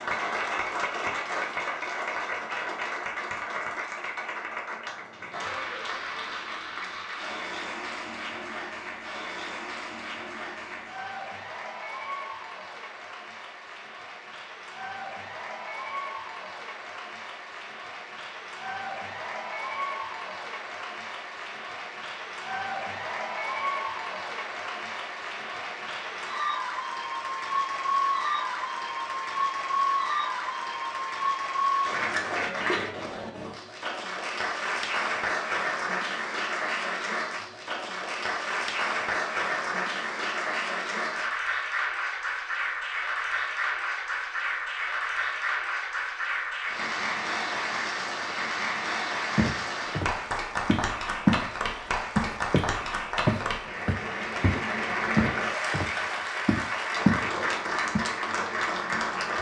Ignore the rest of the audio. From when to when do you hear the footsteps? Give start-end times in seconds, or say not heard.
49.4-51.5, 52.1-57.2.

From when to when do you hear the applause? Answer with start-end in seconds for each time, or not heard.
0.0-59.3.